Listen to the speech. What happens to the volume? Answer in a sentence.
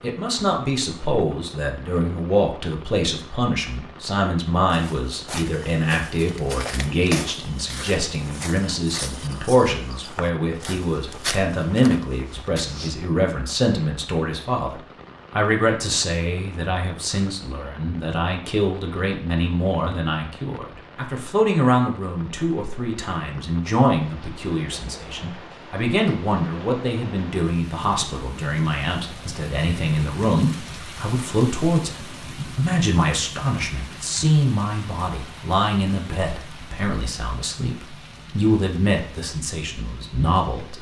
The loudness of the speech stays about the same.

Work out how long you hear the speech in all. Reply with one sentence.
The speech can be heard for 41 seconds in total.